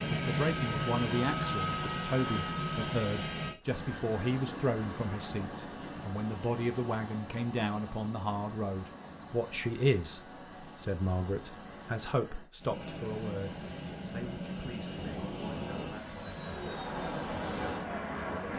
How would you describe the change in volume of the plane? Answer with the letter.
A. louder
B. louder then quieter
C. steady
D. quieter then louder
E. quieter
D.